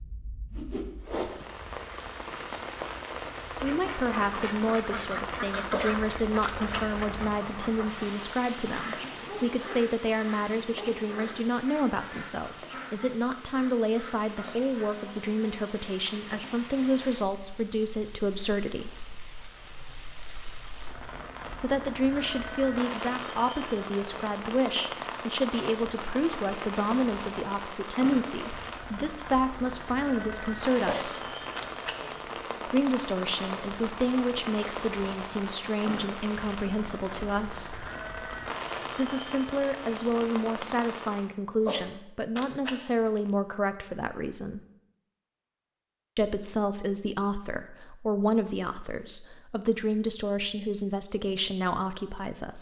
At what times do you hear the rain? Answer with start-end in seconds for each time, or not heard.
0.0-41.3.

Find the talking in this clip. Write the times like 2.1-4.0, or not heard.
3.6-19.1, 21.6-31.4, 32.6-37.9, 39.0-44.6, 46.1-52.5.